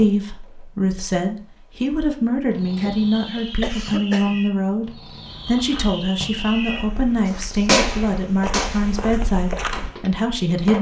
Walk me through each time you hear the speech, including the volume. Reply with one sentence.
You can hear the speech from 0.0 to 10.7 s, at a steady volume.